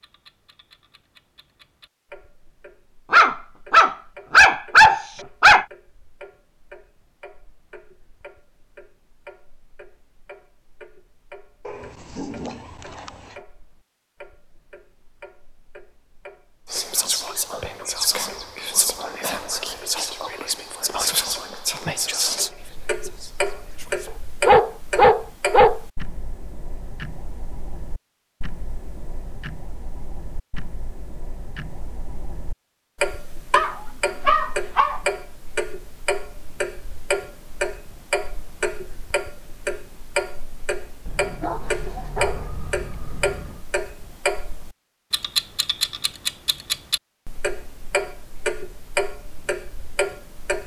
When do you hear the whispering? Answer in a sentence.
You can hear the whispering from 16.6 to 24.1 s.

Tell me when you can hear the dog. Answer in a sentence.
You can hear the dog from 3.1 to 5.7 s, from 11.7 to 13.3 s, from 24.4 to 25.8 s, from 33.5 to 35.0 s and from 41.0 to 43.6 s.